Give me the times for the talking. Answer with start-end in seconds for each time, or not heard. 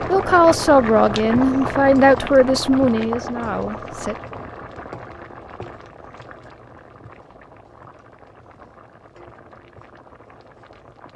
0.1-4.2.